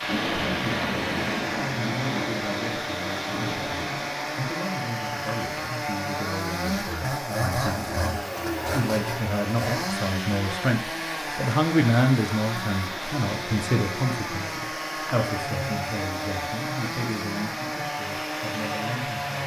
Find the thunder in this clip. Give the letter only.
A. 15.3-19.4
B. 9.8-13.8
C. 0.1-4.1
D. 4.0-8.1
C.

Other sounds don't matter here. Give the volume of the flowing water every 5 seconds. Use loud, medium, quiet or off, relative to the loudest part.
loud, medium, loud, loud.